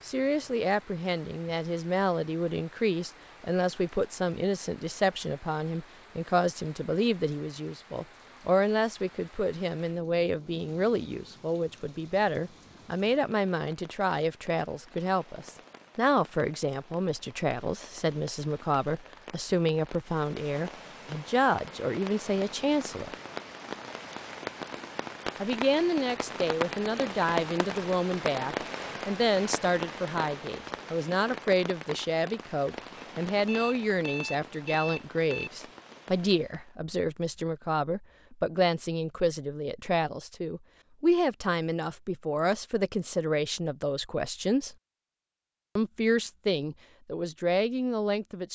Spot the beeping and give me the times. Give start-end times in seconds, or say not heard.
33.5-35.5.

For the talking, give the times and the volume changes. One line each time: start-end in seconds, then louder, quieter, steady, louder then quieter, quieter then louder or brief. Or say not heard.
0.0-23.1 steady
25.4-44.8 steady
45.8-48.5 brief.